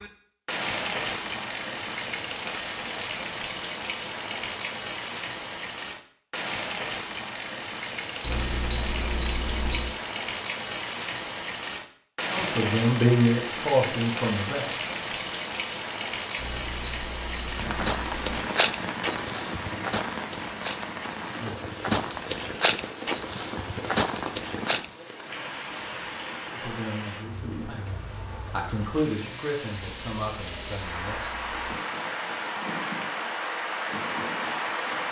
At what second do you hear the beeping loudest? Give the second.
9 s.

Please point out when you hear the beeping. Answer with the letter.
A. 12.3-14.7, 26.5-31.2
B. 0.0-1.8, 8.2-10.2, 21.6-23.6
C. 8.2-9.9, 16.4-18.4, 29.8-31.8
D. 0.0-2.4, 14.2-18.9
C.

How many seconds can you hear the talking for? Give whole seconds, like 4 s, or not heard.
7 s.